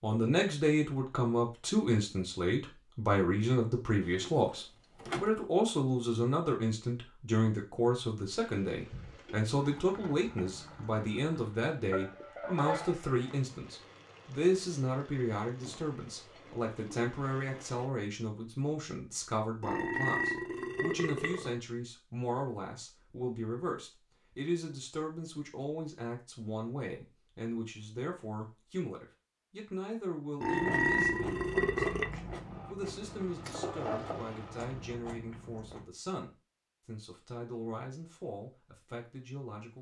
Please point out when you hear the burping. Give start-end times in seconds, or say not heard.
4.0-5.3, 19.6-21.6, 30.4-32.1.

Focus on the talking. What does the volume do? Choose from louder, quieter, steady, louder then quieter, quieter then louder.
quieter.